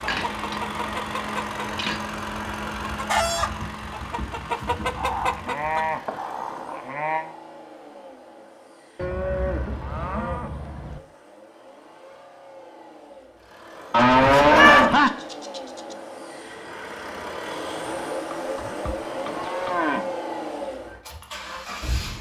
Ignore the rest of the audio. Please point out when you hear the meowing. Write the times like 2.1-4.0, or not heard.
14.2-14.8.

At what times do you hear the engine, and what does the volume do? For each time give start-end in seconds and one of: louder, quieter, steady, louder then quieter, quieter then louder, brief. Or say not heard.
0.0-22.1 quieter then louder.